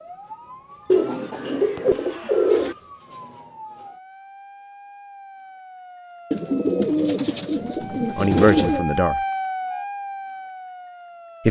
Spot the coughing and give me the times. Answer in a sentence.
The coughing can't be heard in this clip.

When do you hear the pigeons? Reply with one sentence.
You can hear the pigeons from 0.8 to 2.8 s and from 6.3 to 8.8 s.